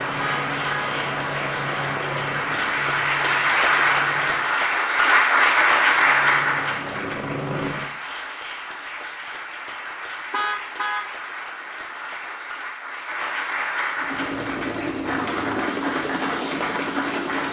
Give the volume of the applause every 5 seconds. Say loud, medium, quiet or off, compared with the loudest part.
loud, loud, medium, medium.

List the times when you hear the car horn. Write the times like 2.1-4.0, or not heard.
0.1-0.9, 10.3-11.1.